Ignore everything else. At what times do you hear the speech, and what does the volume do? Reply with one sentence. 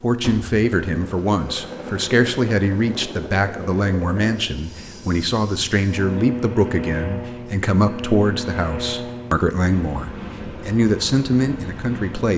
The speech can be heard from 0.0 to 12.3 s, at a steady volume.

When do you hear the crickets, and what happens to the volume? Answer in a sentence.
The crickets can't be heard in this clip.